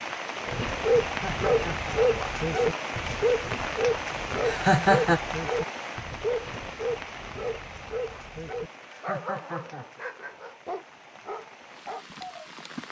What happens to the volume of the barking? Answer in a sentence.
The volume of the barking goes down.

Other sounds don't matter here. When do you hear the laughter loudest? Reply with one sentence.
The volume of the laughter peaks at 5 seconds.